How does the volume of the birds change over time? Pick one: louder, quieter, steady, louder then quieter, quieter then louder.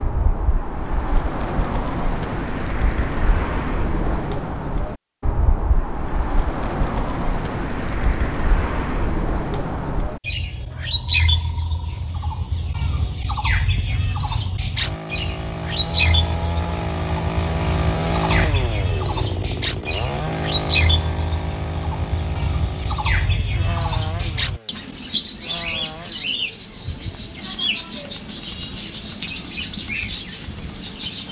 steady.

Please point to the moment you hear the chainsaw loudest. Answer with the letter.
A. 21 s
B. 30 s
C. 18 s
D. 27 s
C.